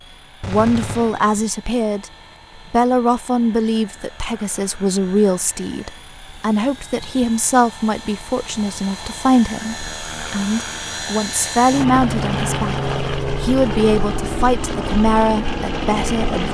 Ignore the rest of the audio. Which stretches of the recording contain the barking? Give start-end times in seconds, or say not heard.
not heard.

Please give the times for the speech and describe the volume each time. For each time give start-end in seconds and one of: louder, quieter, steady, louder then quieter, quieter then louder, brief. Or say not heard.
0.5-2.1 brief
2.7-16.4 steady.